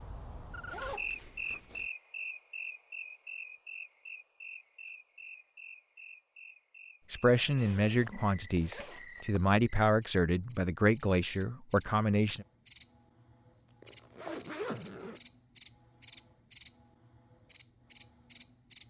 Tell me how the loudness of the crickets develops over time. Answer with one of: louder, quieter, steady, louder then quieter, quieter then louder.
quieter then louder.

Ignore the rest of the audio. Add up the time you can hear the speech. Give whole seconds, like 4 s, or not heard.
5 s.